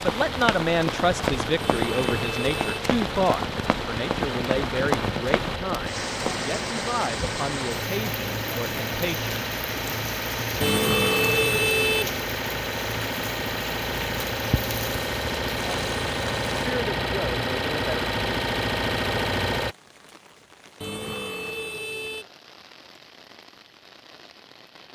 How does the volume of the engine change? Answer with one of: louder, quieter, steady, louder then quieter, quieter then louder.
louder.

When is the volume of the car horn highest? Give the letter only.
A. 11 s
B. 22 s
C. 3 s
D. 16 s
A.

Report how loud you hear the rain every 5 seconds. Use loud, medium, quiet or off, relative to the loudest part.
loud, loud, loud, loud, quiet.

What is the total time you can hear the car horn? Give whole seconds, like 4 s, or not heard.
4 s.